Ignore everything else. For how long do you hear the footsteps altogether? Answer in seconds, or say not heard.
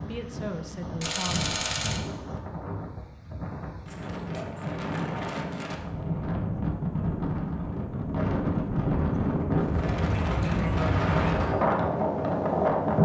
not heard.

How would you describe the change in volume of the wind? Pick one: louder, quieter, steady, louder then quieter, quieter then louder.
louder.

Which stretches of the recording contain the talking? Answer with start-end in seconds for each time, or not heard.
0.0-1.4.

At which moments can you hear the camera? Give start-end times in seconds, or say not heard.
1.0-2.0.